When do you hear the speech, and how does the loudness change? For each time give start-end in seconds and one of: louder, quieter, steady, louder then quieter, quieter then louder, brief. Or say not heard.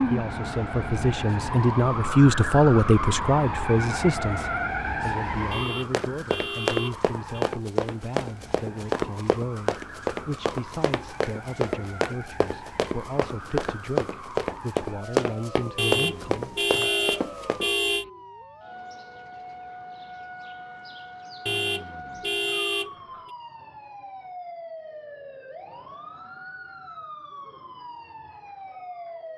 0.1-16.9 quieter.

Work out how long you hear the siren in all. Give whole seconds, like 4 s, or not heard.
29 s.